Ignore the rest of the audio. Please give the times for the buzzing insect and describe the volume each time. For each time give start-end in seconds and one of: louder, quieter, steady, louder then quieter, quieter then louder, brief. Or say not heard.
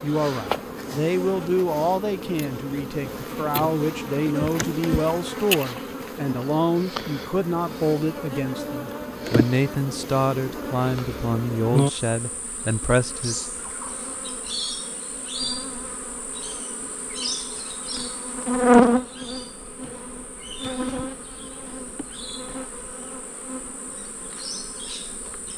0.0-25.5 louder then quieter.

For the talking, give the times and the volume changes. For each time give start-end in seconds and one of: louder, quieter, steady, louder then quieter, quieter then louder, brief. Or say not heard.
0.0-13.4 steady.